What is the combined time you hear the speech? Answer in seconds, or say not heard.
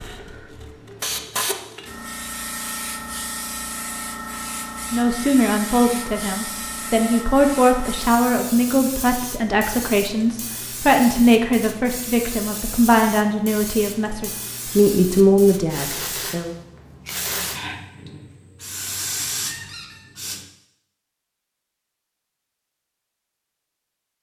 12 s.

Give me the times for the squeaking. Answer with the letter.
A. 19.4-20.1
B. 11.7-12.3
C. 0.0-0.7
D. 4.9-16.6
A.